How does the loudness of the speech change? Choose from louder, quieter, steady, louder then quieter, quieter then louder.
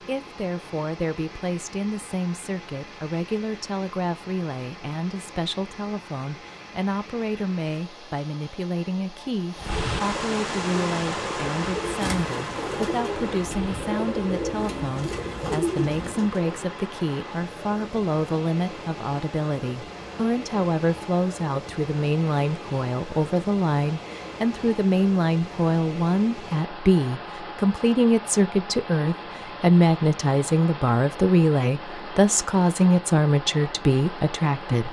louder.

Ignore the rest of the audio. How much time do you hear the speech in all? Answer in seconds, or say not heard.
35 s.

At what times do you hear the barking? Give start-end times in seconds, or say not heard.
not heard.